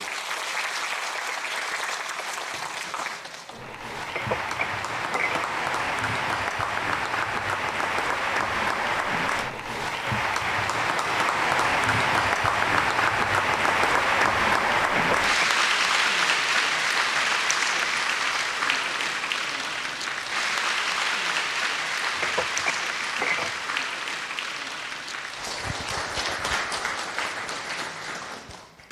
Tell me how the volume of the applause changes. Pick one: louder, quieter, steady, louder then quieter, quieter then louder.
louder then quieter.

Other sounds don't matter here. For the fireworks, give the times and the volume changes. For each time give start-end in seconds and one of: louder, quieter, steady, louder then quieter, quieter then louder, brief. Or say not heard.
not heard.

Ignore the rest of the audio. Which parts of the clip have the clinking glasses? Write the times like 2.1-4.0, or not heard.
4.1-5.6, 14.9-15.6, 22.1-23.7.